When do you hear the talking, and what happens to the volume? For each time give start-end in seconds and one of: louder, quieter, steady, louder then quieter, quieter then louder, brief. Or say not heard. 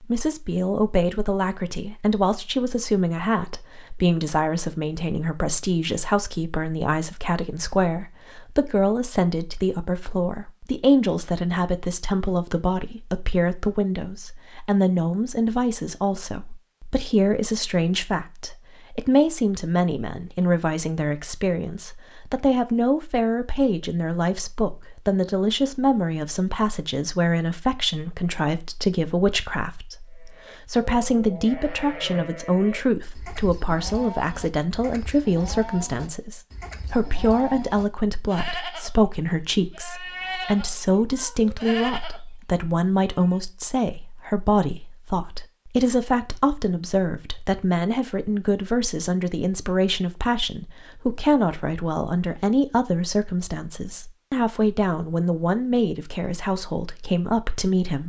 0.0-58.0 steady.